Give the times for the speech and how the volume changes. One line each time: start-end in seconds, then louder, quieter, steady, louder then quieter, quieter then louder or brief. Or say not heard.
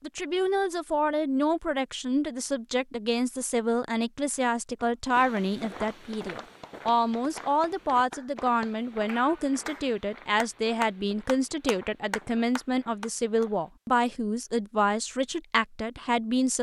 0.0-16.5 steady.